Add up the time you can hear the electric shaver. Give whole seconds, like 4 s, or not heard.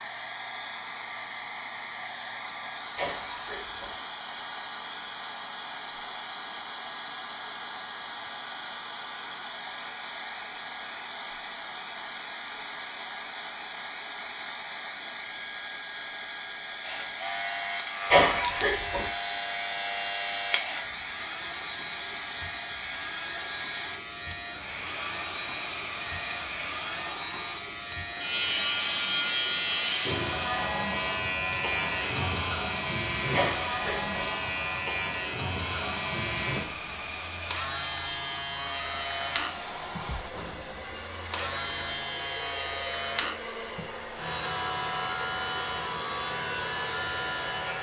31 s.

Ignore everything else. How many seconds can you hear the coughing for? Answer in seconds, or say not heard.
3 s.